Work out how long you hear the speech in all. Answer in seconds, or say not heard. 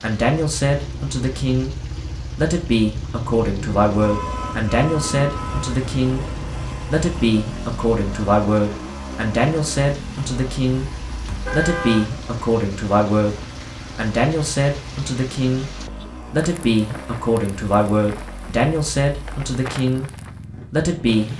18 s.